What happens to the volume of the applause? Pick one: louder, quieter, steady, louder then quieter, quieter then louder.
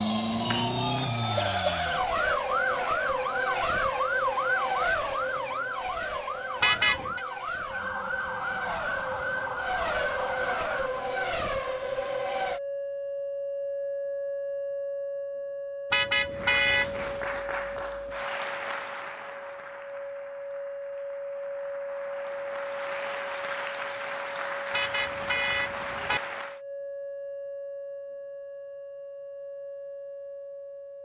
quieter then louder.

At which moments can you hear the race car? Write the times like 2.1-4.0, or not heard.
0.0-12.6.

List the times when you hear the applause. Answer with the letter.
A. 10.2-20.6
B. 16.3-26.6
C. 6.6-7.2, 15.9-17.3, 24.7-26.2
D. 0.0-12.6
B.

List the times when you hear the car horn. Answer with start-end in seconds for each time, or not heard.
6.6-7.2, 15.9-17.3, 24.7-26.2.